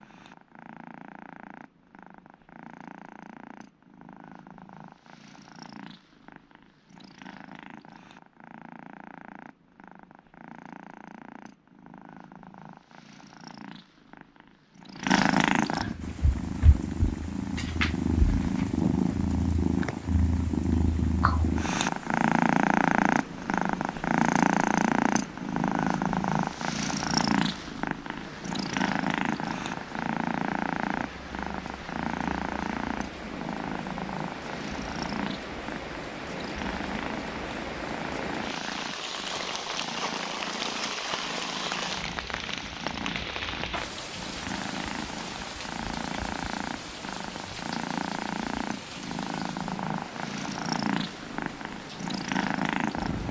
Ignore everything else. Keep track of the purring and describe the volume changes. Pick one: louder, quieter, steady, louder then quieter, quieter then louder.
louder then quieter.